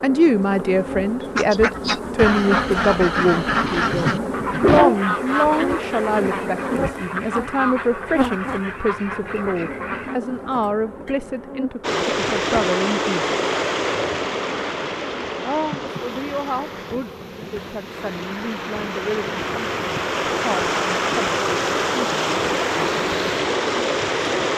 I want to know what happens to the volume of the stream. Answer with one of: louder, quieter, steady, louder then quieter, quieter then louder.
quieter then louder.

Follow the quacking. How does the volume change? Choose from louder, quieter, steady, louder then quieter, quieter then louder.
quieter.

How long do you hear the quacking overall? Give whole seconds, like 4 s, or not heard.
9 s.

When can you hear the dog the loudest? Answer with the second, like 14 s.
5 s.